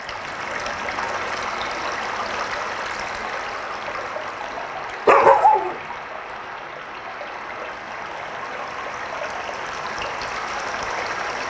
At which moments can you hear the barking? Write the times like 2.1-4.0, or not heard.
5.0-5.8.